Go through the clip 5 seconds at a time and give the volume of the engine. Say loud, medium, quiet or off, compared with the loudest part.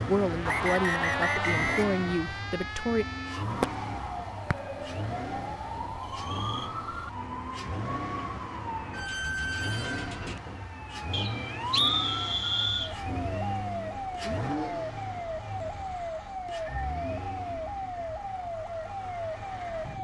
loud, loud, loud, medium.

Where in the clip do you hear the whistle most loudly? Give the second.
12 s.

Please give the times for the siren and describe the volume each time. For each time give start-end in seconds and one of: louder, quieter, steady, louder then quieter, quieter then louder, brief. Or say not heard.
0.2-20.0 steady.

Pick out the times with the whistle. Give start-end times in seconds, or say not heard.
0.5-2.0, 11.1-12.9.